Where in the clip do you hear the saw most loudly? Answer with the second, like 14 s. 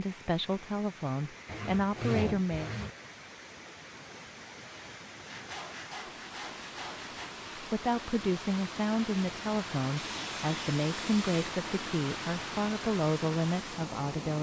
2 s.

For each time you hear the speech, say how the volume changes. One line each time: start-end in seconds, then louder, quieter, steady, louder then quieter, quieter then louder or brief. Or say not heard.
0.0-2.8 brief
7.5-14.3 steady.